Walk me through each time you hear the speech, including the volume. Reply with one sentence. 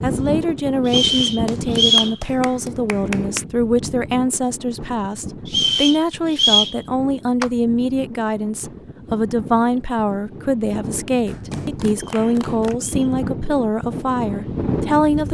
You can hear the speech from 0.0 to 15.2 s, at a steady volume.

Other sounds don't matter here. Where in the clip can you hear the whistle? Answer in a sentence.
You can hear the whistle from 0.8 to 2.1 s, from 5.5 to 6.8 s and from 12.1 to 13.2 s.